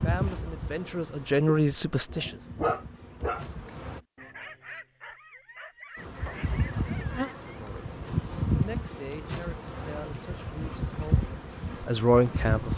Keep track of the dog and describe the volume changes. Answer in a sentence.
The loudness of the dog goes down.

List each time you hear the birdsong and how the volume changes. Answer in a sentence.
The birdsong can't be heard in this clip.